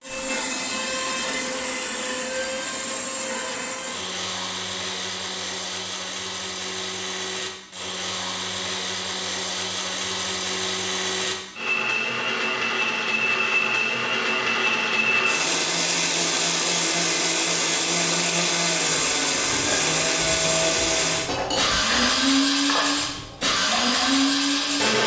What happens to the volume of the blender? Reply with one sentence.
The volume of the blender goes up.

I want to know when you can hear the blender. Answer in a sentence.
You can hear the blender from 0.0 to 25.0 s.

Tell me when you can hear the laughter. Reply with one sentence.
The laughter can't be heard in this clip.